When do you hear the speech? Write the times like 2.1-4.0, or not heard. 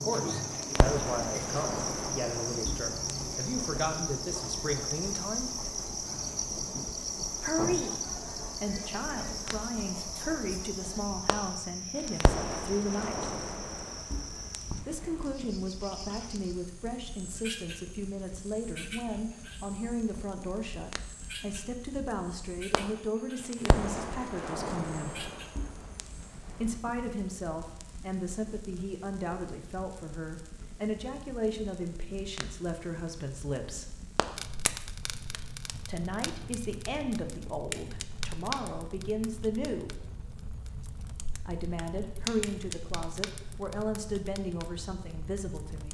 0.0-5.5, 7.4-13.2, 14.8-25.3, 26.6-34.0, 35.9-39.9, 41.5-45.8.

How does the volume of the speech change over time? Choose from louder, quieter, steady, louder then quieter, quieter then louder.
steady.